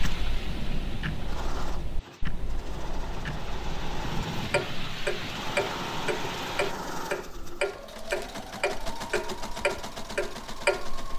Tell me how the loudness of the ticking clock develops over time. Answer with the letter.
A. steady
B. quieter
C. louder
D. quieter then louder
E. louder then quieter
C.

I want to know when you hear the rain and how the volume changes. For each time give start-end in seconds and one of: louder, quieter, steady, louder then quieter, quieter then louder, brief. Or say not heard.
0.0-6.8 quieter then louder.